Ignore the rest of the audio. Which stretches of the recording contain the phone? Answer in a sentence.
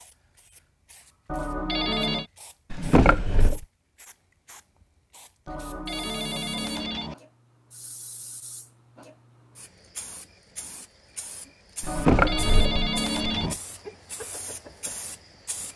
You can hear the phone from 1.2 to 2.2 s, from 5.5 to 7.2 s and from 11.8 to 13.6 s.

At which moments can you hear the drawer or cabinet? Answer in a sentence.
You can hear the drawer or cabinet from 2.7 to 3.6 s and from 11.8 to 13.6 s.